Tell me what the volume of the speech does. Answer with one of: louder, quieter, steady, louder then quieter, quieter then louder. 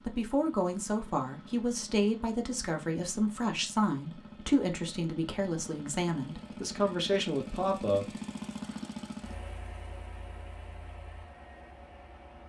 steady.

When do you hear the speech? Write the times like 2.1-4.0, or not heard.
0.0-8.1.